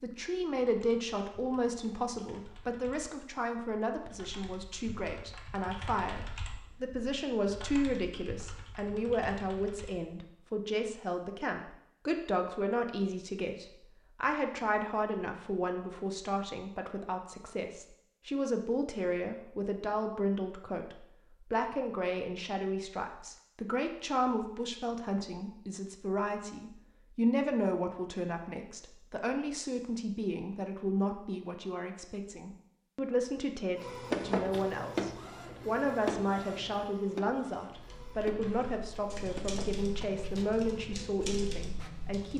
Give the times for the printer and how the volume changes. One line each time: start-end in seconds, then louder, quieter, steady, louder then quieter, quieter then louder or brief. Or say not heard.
33.8-42.3 quieter.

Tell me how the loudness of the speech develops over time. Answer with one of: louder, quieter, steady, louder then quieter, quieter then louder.
steady.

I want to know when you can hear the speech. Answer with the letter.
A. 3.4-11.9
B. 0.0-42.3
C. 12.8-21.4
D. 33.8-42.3
B.